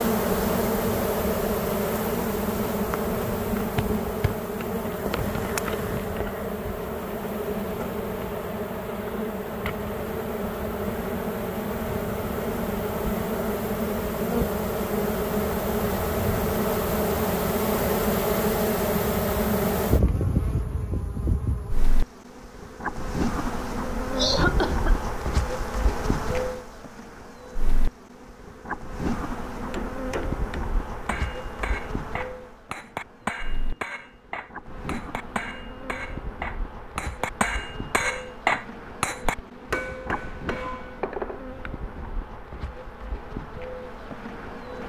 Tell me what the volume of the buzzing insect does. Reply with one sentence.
The volume of the buzzing insect goes down.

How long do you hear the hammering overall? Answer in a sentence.
The hammering can be heard for 12 seconds in total.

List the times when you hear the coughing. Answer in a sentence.
The coughing can be heard from 24.1 to 24.9 s.